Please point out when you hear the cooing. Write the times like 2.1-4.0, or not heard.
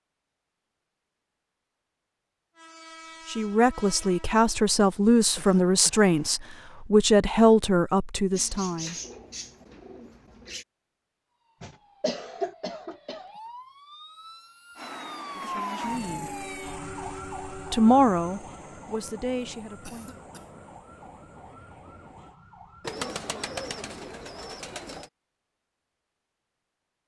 8.3-10.7, 22.9-25.1.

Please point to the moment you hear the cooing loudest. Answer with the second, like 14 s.
23 s.